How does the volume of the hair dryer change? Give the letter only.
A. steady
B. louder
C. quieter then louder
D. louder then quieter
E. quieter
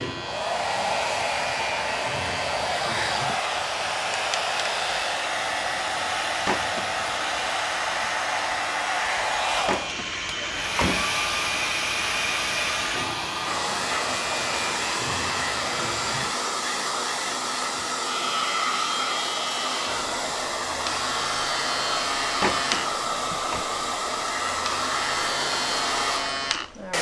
A.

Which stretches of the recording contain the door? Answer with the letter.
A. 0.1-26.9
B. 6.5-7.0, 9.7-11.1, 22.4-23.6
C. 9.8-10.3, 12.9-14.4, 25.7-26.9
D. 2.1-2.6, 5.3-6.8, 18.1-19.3
B.